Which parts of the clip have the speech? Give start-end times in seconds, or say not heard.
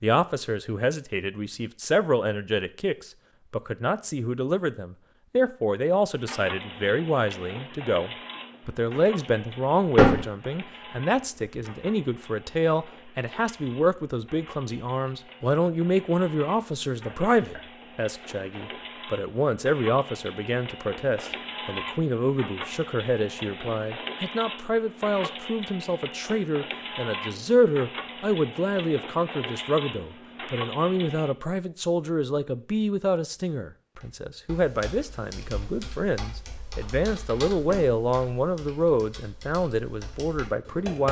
0.0-41.0.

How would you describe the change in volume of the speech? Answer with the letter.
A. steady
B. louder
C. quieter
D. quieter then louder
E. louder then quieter
A.